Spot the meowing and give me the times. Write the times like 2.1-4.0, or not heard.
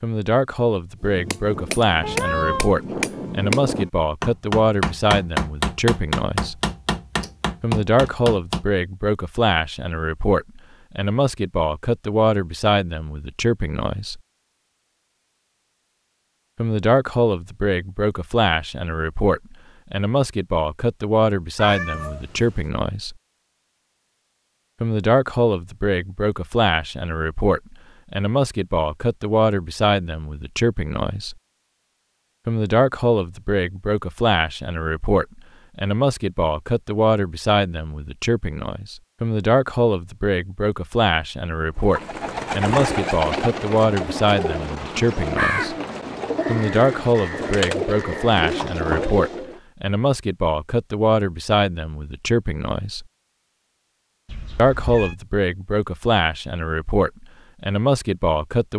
2.0-2.7, 21.6-22.6, 54.2-55.1.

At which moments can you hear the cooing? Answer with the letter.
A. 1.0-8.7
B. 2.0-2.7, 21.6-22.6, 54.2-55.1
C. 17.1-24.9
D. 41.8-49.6
D.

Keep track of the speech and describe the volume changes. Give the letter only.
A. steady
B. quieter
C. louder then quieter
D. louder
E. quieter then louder
A.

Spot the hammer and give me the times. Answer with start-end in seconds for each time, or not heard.
1.0-8.7.